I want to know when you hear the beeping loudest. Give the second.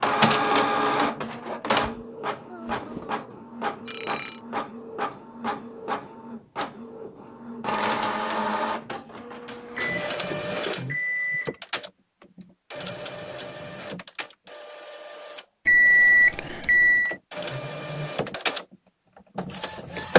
16 s.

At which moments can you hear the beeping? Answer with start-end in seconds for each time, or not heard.
2.5-4.4, 9.8-11.6, 15.7-17.1.